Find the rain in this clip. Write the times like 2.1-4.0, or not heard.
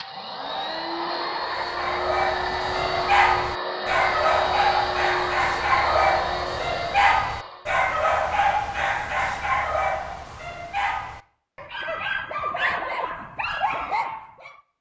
not heard.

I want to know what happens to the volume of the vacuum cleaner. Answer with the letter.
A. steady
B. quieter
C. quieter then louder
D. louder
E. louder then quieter
A.